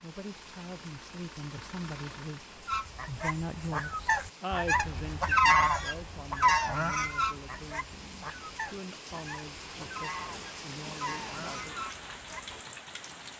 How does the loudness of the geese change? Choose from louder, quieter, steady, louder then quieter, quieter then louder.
louder then quieter.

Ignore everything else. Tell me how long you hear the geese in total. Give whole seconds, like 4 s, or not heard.
10 s.